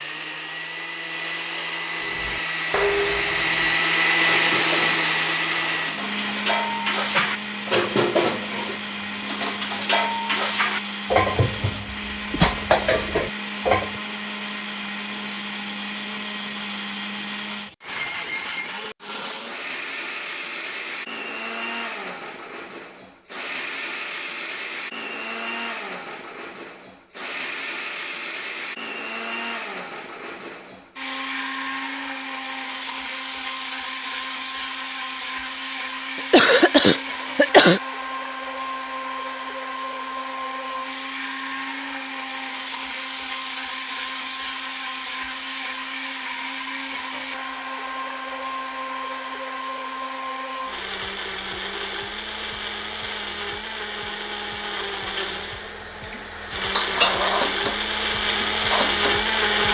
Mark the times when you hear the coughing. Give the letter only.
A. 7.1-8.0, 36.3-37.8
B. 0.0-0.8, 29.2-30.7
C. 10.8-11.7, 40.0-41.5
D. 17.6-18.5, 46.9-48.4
A.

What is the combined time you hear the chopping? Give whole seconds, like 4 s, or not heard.
not heard.